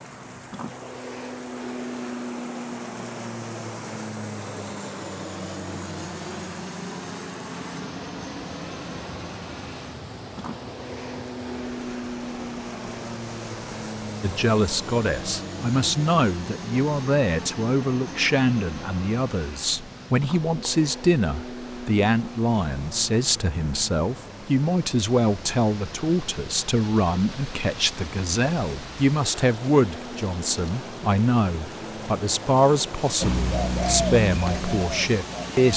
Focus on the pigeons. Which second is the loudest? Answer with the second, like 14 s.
34 s.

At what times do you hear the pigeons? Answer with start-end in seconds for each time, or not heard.
33.2-35.7.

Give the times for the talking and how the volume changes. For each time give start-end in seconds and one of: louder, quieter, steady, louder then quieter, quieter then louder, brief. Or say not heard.
14.2-35.7 steady.